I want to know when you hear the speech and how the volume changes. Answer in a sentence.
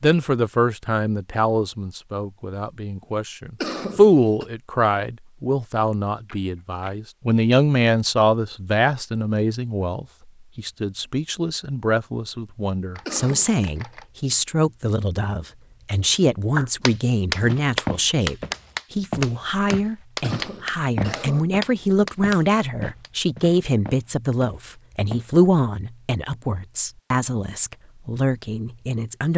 You can hear the speech from 0.0 to 29.3 s, at a steady volume.